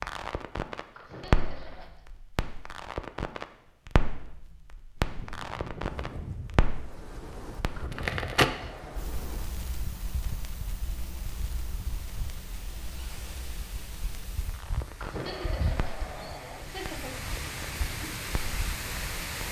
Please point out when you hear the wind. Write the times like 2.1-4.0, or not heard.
5.0-19.4.